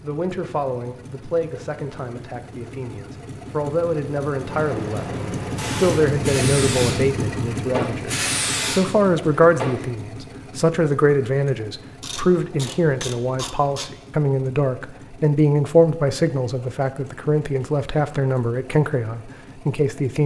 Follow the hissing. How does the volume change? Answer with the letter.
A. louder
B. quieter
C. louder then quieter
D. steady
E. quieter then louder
A.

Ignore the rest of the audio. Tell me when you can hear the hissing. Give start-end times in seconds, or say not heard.
4.4-9.8.